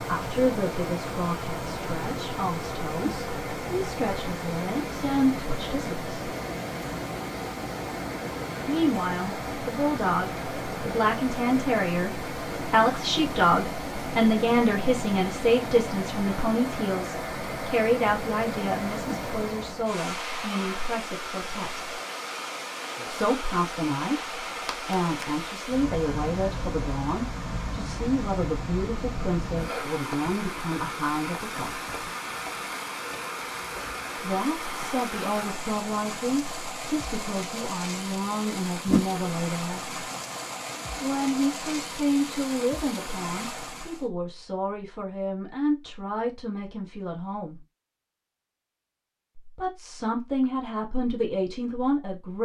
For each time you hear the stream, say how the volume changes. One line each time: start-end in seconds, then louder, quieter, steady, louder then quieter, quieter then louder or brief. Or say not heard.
0.0-44.0 steady.